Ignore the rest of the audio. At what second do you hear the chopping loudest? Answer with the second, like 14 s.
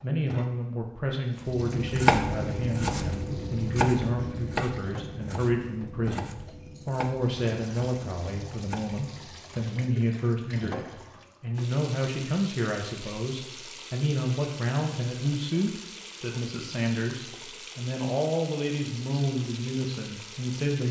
2 s.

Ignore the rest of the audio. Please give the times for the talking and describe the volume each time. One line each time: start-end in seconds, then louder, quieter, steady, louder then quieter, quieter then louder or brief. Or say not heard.
0.0-20.8 steady.